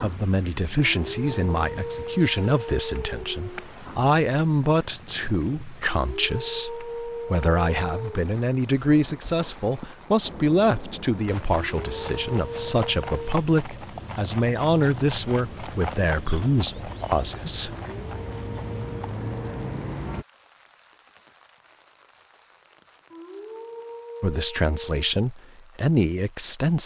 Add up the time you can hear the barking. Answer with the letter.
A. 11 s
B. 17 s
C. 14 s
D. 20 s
A.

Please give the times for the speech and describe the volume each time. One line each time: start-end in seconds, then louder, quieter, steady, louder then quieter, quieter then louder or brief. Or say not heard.
0.0-17.8 steady
24.2-26.8 brief.